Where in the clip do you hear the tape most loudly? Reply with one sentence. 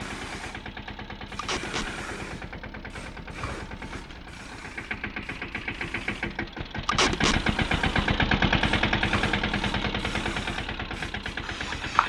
The volume of the tape peaks at 7 seconds.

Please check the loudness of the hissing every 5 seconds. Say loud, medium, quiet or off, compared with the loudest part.
medium, medium, loud.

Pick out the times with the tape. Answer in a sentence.
The tape can be heard from 1.4 to 1.9 s and from 6.8 to 7.4 s.